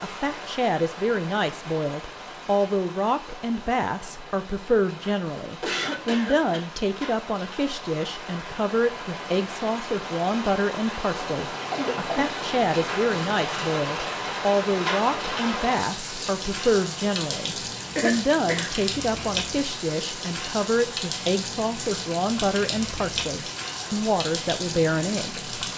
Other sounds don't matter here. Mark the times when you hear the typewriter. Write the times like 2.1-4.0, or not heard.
not heard.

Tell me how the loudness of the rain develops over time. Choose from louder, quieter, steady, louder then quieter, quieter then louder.
louder.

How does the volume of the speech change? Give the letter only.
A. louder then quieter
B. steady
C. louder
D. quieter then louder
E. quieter
B.